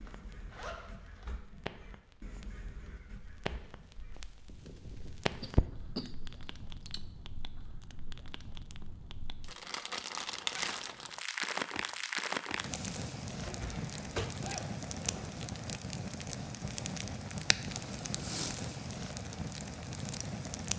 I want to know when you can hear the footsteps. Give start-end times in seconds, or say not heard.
not heard.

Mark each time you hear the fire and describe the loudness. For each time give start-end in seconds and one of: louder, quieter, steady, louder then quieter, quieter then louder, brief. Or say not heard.
0.0-20.7 louder.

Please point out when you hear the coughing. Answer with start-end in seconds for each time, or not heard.
5.4-7.0, 13.4-14.5.